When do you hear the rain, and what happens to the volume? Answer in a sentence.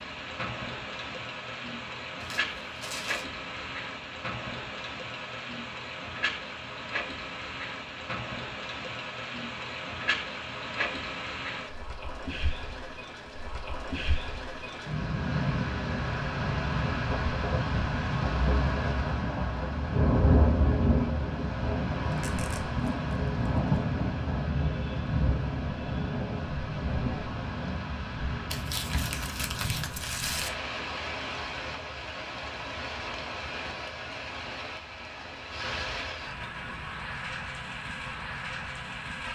You can hear the rain from 0.0 to 39.2 s, getting louder then quieter.